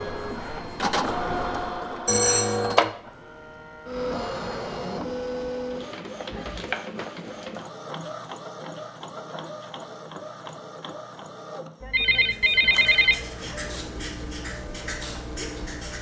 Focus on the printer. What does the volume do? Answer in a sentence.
The loudness of the printer goes down.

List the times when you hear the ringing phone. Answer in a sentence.
The ringing phone can be heard from 2.0 to 3.0 s and from 11.8 to 13.2 s.